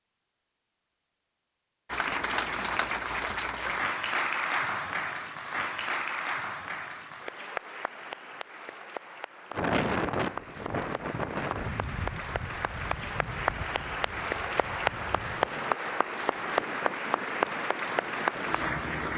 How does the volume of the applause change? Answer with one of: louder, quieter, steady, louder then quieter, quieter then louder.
quieter then louder.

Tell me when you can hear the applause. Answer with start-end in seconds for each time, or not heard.
1.9-19.1.